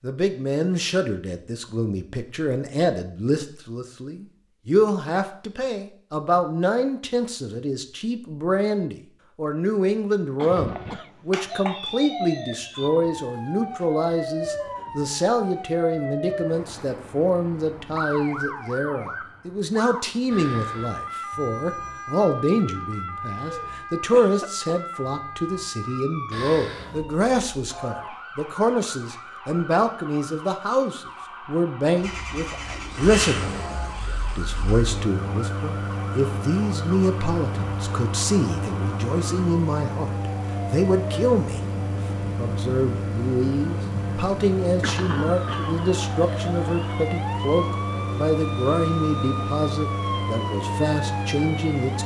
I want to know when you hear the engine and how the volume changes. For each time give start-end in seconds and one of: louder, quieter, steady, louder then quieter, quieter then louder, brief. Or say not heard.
31.9-52.0 steady.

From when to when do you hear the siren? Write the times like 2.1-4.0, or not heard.
10.4-52.0.